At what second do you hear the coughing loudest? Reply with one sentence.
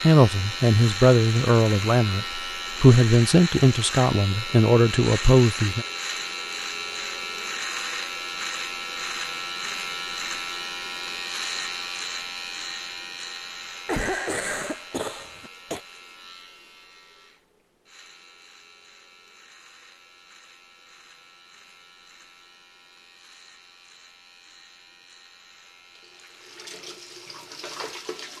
The loudest moment of the coughing is at 14 seconds.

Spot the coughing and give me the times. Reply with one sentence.
The coughing can be heard from 13.8 to 15.8 s.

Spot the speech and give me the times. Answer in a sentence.
You can hear the speech from 0.0 to 5.8 s.